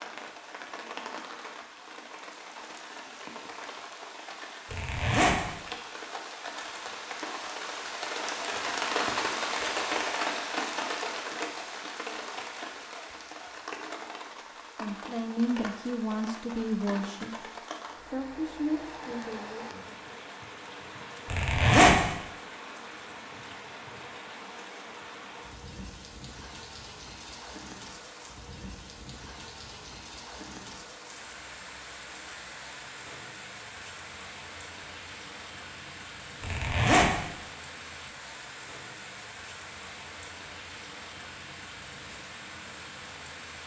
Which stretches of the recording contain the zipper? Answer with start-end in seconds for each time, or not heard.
4.7-5.4, 21.3-22.0, 36.4-37.1.